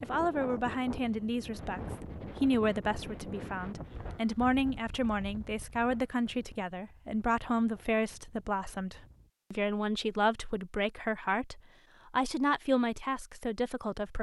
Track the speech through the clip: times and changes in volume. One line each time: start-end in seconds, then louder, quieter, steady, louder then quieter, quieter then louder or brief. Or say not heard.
0.0-14.1 steady.